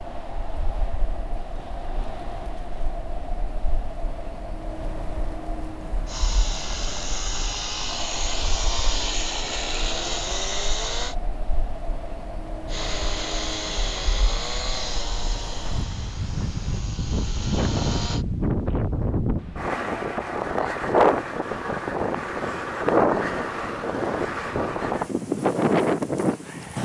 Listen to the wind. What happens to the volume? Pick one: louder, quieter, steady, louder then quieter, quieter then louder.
louder.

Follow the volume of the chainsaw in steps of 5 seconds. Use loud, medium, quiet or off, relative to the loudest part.
off, loud, loud, medium, off, off.